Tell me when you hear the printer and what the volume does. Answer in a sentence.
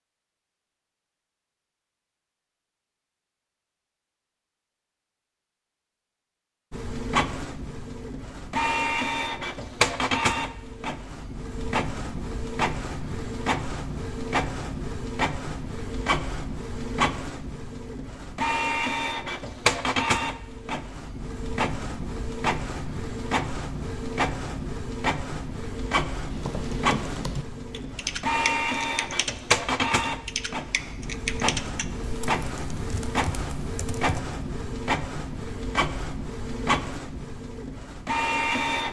You can hear the printer from 6.7 to 38.8 s, at a steady volume.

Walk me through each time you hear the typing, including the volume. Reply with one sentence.
You can hear the typing from 26.3 to 34.2 s, getting quieter.